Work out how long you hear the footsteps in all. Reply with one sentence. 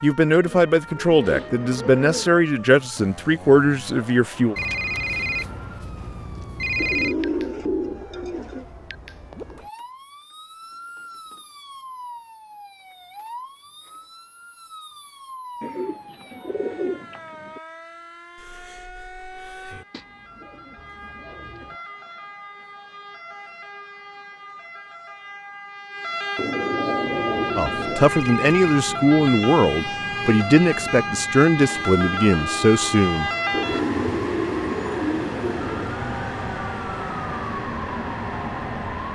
The footsteps can't be heard in this clip.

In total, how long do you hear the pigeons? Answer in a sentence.
You can hear the pigeons for 12 seconds altogether.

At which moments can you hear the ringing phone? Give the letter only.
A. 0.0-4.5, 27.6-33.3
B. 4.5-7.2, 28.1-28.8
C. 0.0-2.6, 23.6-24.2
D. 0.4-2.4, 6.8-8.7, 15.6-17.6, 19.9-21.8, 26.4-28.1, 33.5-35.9
B.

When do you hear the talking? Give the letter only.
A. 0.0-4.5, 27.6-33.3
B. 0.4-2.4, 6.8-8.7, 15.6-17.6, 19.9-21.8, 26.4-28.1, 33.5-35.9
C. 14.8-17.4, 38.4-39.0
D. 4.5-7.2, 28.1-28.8
A.